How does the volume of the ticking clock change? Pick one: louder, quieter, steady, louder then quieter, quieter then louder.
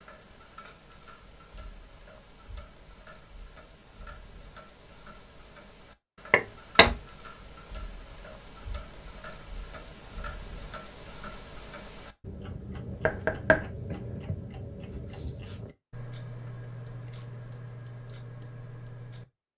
louder.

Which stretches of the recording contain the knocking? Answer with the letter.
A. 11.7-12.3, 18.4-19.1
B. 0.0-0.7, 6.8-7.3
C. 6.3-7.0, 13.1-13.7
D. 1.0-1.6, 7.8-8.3
C.